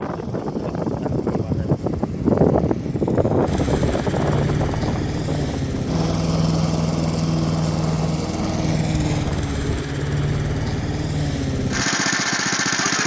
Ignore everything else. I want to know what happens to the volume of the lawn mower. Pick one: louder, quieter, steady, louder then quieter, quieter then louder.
louder.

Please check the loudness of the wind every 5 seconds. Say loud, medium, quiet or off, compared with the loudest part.
loud, medium, off.